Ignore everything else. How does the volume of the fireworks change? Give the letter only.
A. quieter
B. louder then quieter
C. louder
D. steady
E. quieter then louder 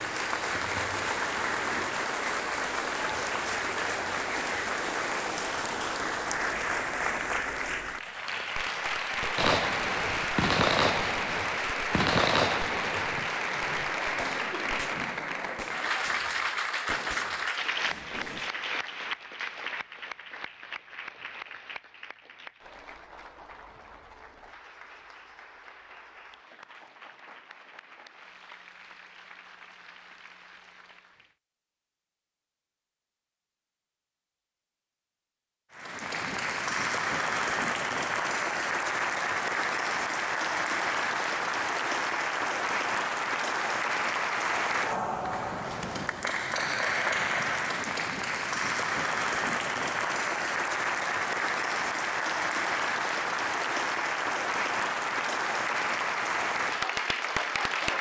A.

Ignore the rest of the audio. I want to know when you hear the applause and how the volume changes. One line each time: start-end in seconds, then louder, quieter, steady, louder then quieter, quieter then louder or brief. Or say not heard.
0.0-31.4 quieter
35.7-57.9 steady.